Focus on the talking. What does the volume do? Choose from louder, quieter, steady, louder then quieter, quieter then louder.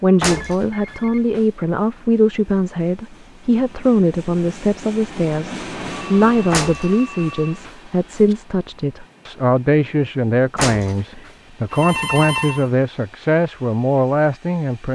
steady.